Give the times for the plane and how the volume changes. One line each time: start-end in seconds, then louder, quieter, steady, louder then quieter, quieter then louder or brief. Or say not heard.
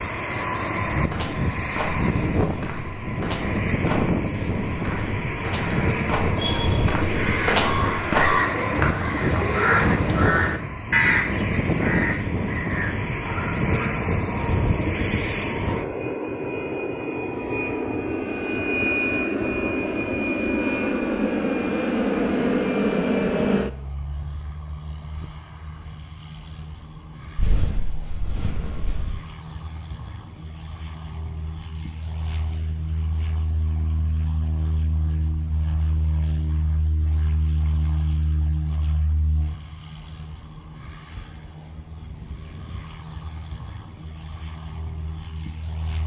0.0-46.0 quieter.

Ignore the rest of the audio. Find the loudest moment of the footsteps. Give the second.
8 s.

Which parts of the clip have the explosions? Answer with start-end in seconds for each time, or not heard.
not heard.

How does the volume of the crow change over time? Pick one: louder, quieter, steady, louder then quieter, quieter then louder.
louder then quieter.